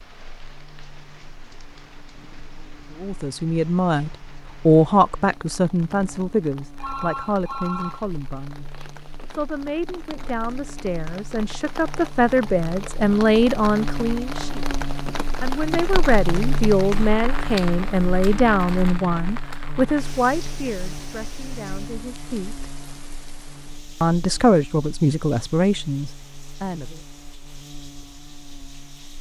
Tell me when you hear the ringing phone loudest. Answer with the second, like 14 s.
8 s.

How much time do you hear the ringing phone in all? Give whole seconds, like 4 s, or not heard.
3 s.